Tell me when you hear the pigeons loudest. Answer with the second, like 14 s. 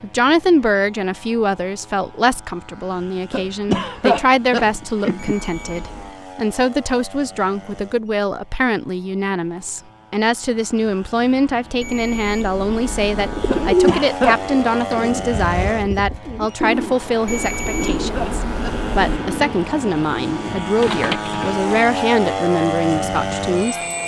14 s.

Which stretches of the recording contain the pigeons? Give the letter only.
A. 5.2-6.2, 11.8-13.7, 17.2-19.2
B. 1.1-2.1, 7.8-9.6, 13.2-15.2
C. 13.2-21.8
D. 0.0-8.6
C.